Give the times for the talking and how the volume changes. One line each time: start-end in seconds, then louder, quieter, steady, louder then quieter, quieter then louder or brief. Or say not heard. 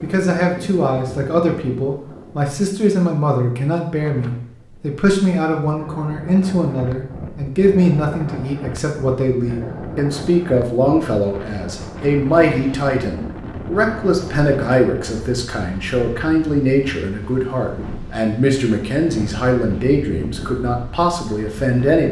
0.0-22.0 steady.